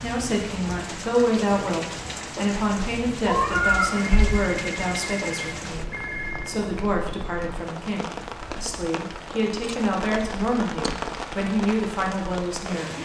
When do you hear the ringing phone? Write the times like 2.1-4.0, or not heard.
3.9-6.5.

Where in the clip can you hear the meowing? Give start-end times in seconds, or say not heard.
3.2-4.4.